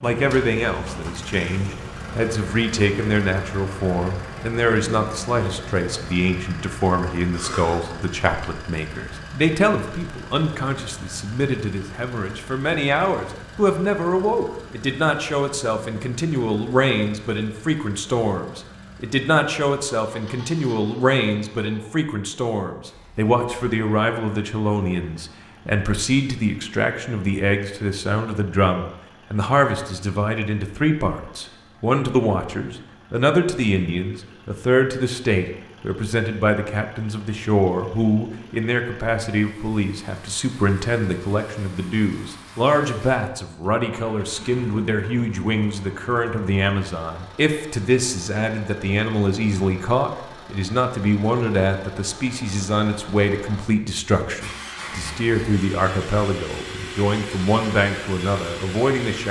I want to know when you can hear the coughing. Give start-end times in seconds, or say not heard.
7.3-7.8.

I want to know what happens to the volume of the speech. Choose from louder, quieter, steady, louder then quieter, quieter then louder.
steady.